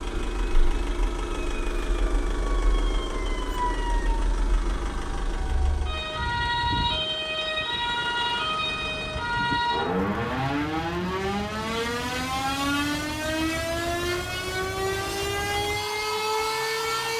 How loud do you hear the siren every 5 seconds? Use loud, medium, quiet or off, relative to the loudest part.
medium, loud, loud, loud.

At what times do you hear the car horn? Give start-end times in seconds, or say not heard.
not heard.